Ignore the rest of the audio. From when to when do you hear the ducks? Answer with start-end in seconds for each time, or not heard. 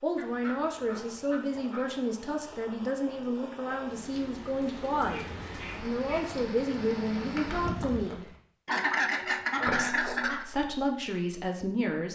0.1-1.9, 4.7-6.3, 8.7-10.4.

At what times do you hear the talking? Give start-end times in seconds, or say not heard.
0.0-8.2, 9.7-12.1.